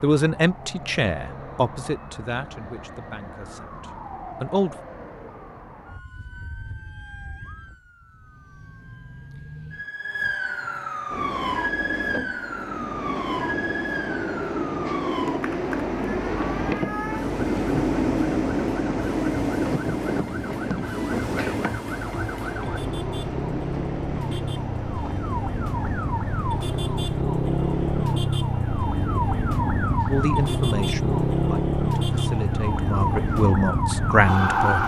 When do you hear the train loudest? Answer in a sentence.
The loudest moment of the train is at 18 seconds.